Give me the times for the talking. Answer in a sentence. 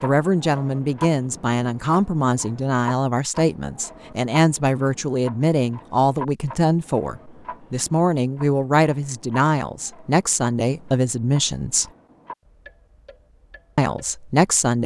The talking can be heard from 0.0 to 11.8 s and from 13.8 to 14.8 s.